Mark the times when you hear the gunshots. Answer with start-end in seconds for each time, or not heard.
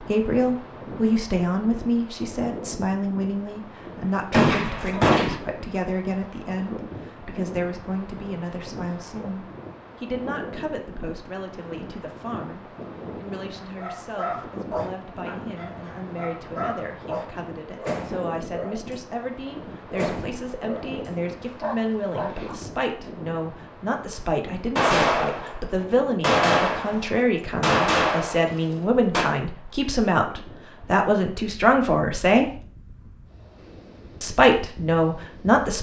4.3-5.3, 24.8-29.2.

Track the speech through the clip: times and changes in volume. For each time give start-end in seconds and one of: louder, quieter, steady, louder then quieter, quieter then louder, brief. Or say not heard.
0.0-32.6 quieter then louder
34.2-35.7 brief.